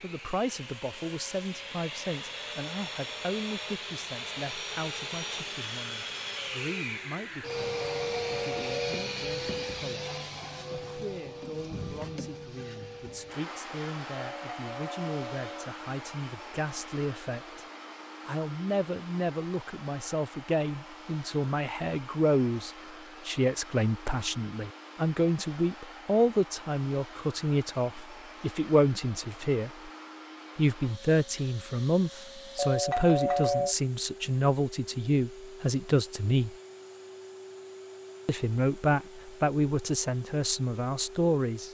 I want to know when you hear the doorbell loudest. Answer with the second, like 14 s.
33 s.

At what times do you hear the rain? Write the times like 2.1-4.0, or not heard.
not heard.